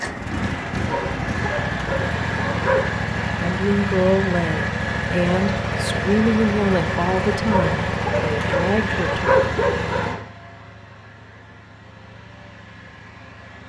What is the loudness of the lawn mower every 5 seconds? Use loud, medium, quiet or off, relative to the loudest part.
loud, loud, quiet.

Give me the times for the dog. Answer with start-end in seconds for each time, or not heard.
0.8-2.9, 7.5-10.2.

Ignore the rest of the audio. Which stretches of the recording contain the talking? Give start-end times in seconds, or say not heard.
3.4-9.2.